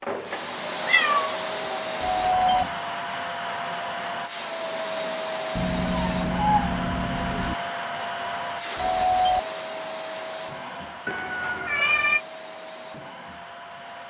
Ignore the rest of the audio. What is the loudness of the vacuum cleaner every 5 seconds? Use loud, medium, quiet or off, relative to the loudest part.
loud, loud, medium.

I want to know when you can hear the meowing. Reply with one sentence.
You can hear the meowing from 0.8 to 1.8 s, from 5.5 to 7.5 s and from 11.1 to 12.2 s.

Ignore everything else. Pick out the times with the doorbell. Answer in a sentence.
You can hear the doorbell from 2.0 to 2.6 s and from 8.8 to 9.4 s.